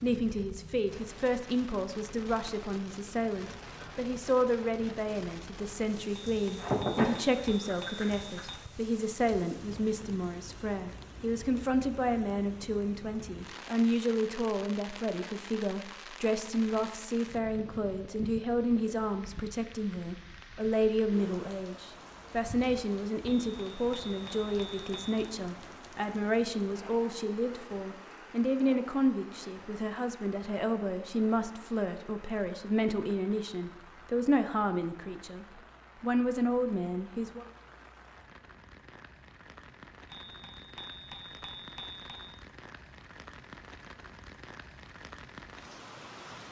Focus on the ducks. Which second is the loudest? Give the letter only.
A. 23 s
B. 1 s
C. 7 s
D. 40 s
C.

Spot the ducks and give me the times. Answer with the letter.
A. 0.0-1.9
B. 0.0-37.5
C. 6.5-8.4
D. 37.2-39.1
C.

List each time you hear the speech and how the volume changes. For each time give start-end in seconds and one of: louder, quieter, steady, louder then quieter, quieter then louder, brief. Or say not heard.
0.0-37.5 steady.